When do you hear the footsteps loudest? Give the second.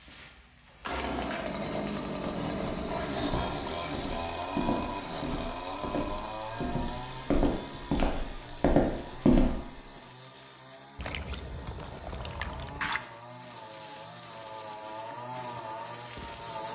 9 s.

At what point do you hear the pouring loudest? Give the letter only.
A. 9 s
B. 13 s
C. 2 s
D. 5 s
B.